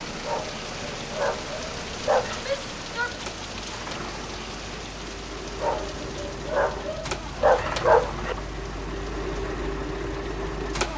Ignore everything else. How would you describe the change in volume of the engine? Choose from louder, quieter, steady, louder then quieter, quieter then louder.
louder.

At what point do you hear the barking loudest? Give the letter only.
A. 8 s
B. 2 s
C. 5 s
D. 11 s
A.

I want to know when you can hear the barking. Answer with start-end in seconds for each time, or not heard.
0.2-2.5, 5.6-8.3.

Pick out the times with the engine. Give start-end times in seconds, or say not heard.
0.0-10.9.